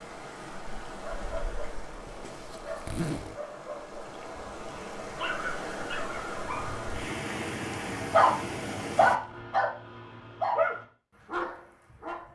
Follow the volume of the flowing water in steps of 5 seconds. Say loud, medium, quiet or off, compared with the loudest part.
medium, loud, off.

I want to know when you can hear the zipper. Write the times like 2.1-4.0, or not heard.
2.0-3.4.